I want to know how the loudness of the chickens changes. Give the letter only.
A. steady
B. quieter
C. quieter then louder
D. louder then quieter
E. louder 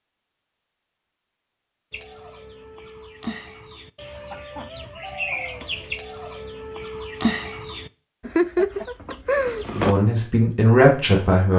E.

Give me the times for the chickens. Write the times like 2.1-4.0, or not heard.
1.9-9.9.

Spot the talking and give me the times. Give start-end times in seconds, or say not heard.
9.7-11.5.